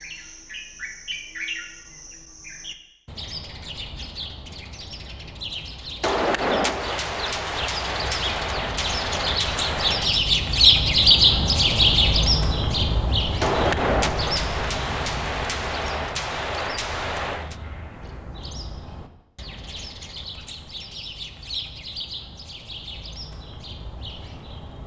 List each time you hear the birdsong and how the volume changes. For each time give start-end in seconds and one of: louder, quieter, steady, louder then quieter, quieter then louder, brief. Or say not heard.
0.0-24.8 louder then quieter.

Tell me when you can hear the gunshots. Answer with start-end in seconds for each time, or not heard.
6.0-10.2, 13.4-17.6.